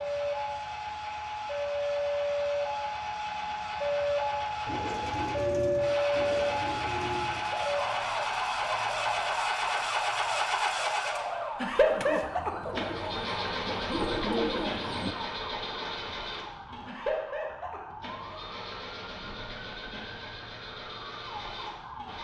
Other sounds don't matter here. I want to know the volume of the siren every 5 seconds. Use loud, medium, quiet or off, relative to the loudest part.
loud, loud, medium, quiet, quiet.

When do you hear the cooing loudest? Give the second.
14 s.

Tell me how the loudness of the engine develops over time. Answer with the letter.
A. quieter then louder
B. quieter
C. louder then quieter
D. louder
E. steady
C.